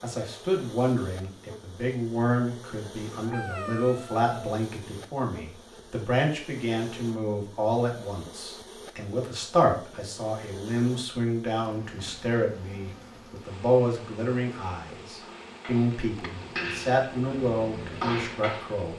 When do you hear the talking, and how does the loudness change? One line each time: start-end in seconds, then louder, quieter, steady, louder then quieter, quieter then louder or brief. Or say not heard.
0.0-18.9 steady.